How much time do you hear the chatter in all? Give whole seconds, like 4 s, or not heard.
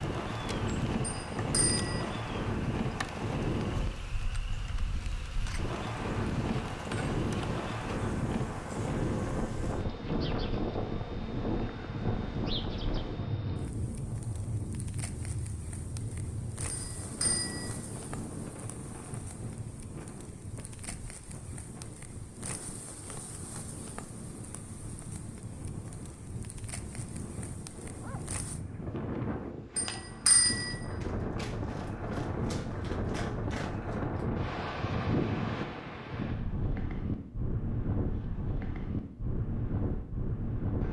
not heard.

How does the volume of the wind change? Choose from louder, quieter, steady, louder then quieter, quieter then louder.
quieter then louder.